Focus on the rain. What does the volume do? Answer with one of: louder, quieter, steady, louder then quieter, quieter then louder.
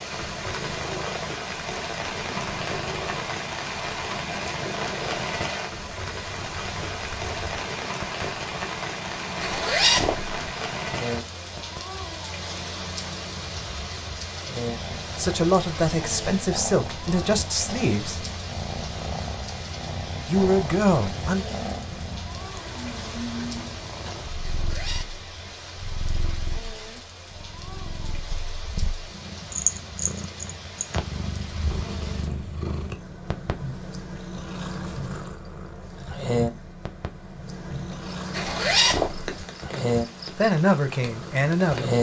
quieter.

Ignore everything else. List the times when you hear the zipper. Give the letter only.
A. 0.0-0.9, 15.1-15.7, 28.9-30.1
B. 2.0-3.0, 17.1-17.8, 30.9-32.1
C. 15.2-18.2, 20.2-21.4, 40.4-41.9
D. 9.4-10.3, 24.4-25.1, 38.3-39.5
D.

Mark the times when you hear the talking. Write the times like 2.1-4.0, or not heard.
15.2-18.2, 20.2-21.4, 40.4-41.9.